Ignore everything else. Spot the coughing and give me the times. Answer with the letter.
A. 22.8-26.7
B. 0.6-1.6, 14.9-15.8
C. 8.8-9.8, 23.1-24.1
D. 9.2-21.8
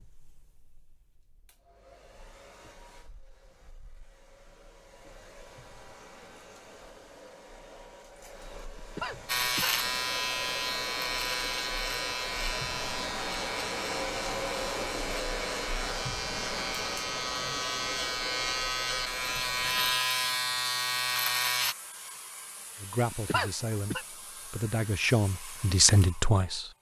C.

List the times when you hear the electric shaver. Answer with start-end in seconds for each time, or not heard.
9.2-21.8.